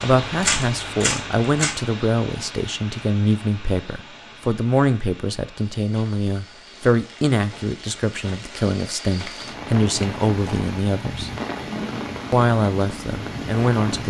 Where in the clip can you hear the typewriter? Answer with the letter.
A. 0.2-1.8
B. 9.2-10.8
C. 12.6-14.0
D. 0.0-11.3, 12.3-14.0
A.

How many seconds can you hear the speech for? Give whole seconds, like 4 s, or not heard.
13 s.